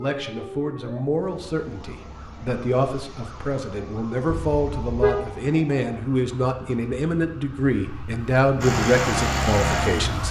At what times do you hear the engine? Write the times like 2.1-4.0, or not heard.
8.6-10.2.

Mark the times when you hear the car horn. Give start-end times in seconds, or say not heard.
4.3-5.3.